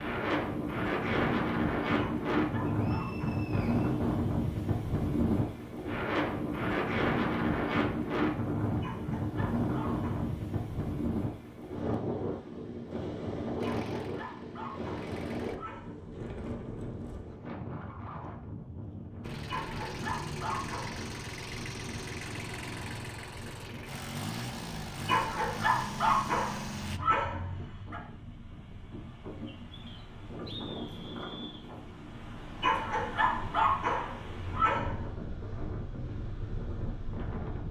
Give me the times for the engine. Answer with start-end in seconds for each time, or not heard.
13.6-15.6, 19.2-27.0.